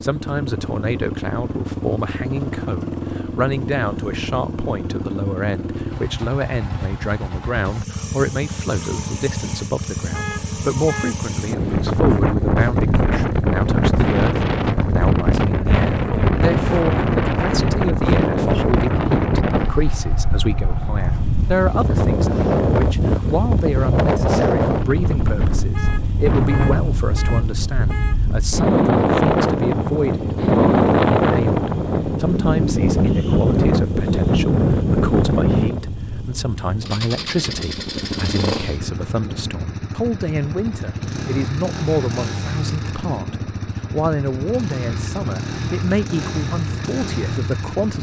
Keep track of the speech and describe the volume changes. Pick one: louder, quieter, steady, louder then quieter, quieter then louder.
steady.